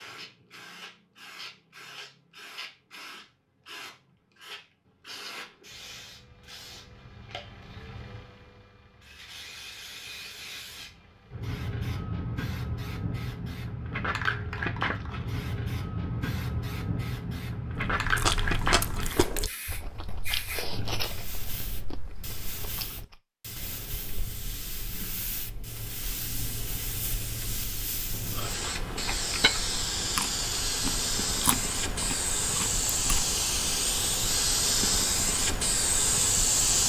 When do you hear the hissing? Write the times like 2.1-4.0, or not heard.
0.0-36.8.